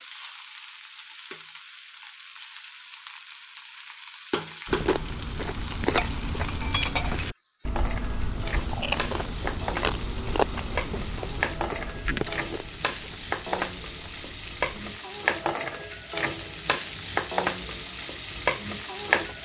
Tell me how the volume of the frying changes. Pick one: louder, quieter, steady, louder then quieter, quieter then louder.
louder.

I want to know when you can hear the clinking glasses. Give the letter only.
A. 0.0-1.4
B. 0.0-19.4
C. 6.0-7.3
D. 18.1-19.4
C.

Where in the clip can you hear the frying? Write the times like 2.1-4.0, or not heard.
0.0-19.4.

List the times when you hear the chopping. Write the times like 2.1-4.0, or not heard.
not heard.